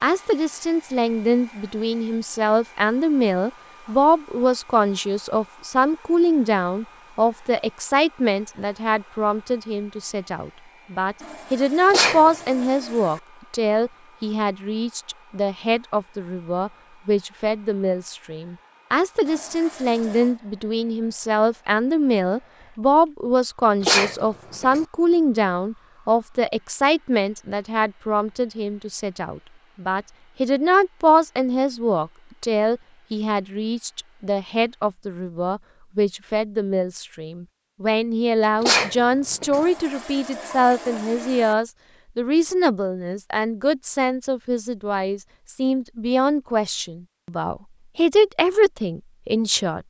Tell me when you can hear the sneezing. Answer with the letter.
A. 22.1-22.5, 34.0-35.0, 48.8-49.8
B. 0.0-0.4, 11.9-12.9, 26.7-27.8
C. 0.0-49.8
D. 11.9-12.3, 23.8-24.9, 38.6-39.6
D.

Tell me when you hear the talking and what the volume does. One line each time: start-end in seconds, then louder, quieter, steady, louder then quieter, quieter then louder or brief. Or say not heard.
0.0-49.8 steady.